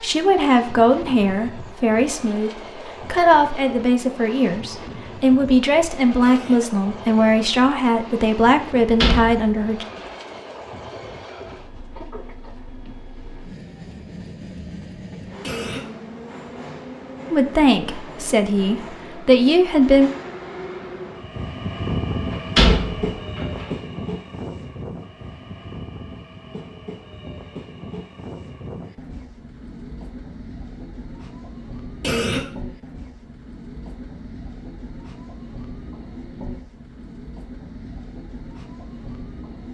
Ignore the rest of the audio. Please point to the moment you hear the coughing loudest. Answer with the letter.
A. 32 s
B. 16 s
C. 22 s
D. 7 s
A.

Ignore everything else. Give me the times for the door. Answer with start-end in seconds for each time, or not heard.
9.0-10.1, 22.3-23.6.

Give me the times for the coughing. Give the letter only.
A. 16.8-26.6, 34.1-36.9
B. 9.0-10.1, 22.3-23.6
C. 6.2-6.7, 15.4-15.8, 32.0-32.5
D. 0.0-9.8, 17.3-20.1
C.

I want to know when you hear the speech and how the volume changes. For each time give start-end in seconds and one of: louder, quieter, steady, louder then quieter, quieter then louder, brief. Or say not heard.
0.0-9.8 steady
17.3-20.1 brief.